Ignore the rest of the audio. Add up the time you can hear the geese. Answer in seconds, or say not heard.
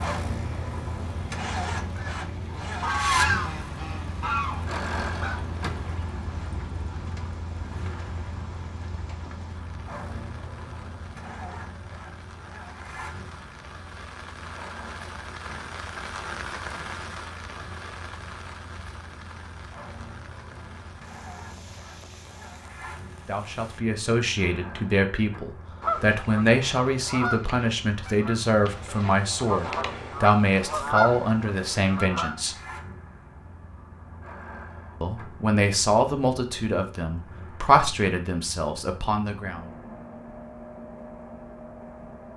10 s.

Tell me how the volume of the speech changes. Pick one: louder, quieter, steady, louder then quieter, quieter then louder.
steady.